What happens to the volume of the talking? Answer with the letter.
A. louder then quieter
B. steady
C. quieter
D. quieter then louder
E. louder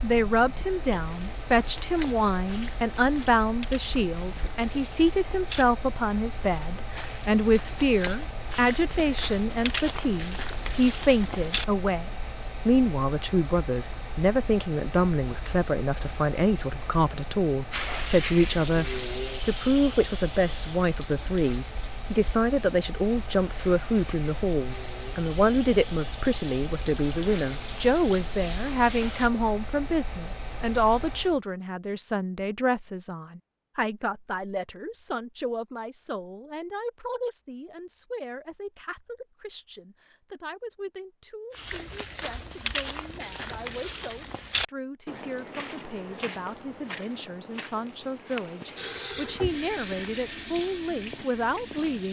C.